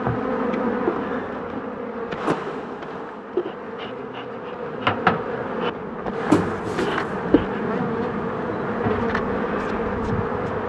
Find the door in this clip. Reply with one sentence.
The door can be heard from 2.2 to 2.9 s and from 6.2 to 7.1 s.